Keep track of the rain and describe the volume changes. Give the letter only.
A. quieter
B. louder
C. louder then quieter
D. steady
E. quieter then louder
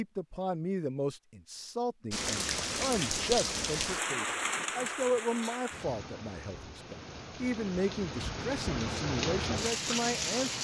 E.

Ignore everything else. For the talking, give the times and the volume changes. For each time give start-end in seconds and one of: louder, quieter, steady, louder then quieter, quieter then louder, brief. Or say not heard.
0.0-10.6 steady.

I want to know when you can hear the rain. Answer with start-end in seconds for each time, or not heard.
2.1-10.6.